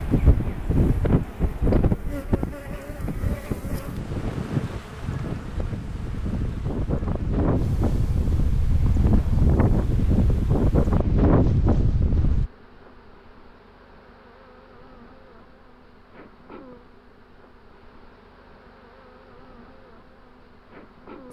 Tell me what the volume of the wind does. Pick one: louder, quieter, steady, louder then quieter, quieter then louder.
quieter then louder.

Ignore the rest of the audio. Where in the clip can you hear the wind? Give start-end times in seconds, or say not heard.
0.0-12.5.